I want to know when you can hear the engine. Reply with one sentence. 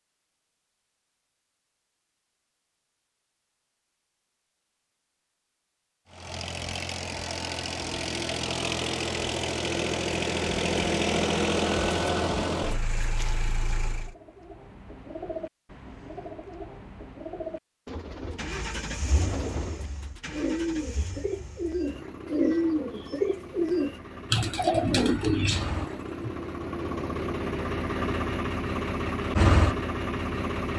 The engine can be heard from 6.1 to 14.2 s and from 18.4 to 30.7 s.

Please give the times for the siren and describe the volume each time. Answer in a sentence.
The siren can't be heard in this clip.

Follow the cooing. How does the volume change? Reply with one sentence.
The volume of the cooing goes up.